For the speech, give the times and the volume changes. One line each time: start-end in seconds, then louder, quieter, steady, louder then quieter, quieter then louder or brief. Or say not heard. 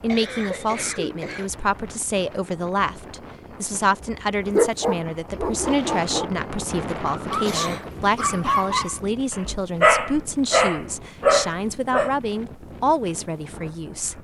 0.0-14.1 steady.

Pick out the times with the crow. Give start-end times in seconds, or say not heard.
not heard.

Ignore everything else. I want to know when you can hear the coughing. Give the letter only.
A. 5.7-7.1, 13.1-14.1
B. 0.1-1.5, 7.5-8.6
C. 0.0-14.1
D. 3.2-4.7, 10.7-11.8
B.